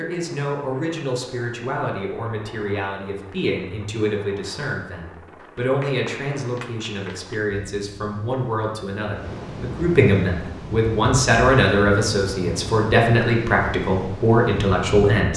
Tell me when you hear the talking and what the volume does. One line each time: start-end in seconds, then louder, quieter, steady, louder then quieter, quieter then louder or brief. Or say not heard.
0.0-15.3 louder.